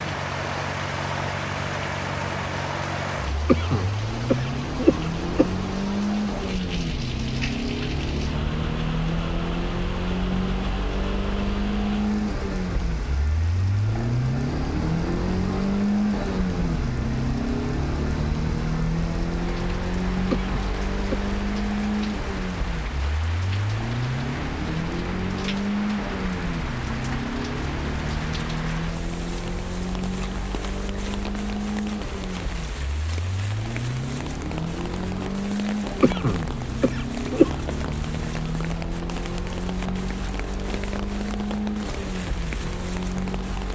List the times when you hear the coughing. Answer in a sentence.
You can hear the coughing from 3.5 to 5.5 s, from 20.3 to 21.2 s and from 36.0 to 37.5 s.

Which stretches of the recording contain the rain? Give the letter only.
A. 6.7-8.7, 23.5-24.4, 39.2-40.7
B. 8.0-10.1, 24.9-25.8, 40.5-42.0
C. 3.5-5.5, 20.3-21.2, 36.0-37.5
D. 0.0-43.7
D.